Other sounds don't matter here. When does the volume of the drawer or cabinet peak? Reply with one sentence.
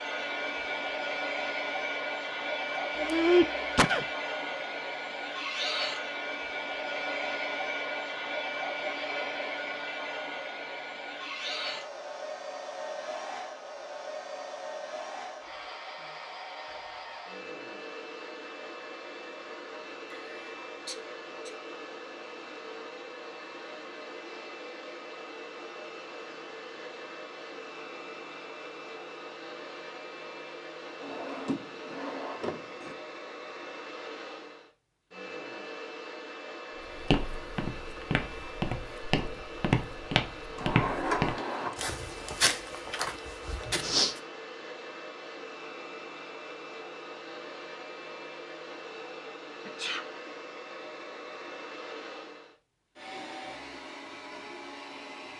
The loudest moment of the drawer or cabinet is at 41 seconds.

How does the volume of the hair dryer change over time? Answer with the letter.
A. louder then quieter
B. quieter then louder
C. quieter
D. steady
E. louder
C.